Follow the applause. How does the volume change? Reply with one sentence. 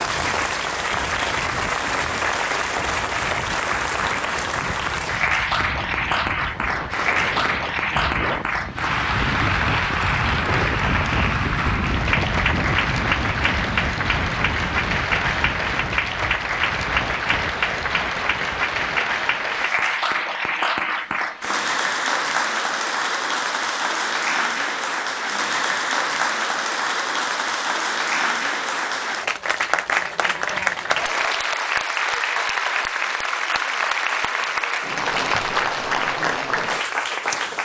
The loudness of the applause stays about the same.